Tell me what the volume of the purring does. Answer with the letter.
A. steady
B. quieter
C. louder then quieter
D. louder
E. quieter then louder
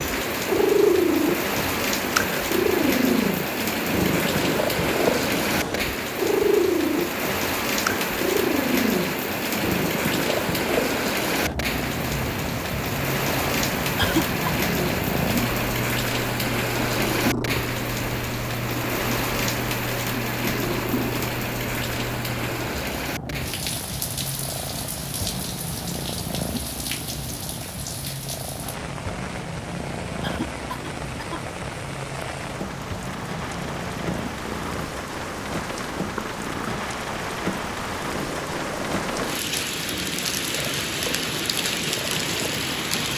B.